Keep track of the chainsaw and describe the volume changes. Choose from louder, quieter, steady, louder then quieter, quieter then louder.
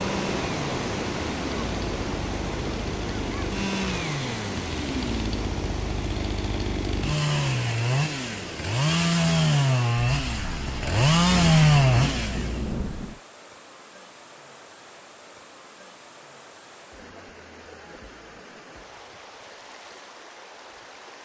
louder.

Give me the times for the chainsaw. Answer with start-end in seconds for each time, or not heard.
0.0-12.6.